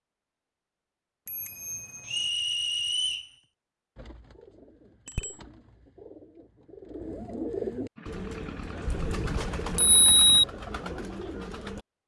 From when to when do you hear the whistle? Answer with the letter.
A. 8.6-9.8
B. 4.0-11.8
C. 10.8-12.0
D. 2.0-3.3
D.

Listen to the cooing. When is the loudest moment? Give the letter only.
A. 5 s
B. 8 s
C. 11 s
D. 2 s
B.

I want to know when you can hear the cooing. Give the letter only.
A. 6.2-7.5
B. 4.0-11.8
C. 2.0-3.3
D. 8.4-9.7
B.